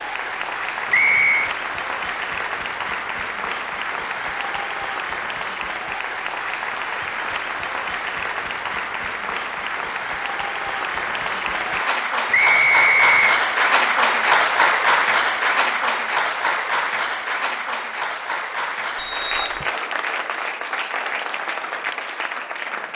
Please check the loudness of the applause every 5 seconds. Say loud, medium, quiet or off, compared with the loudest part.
medium, medium, loud, loud, medium.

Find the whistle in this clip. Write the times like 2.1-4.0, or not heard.
0.9-1.5, 12.3-13.4, 18.9-19.7.